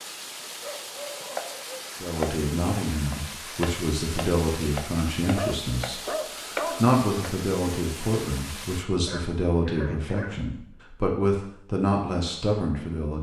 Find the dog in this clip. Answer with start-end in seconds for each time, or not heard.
0.6-1.9, 5.3-7.0, 9.1-10.7.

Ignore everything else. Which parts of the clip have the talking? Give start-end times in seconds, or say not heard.
2.0-13.1.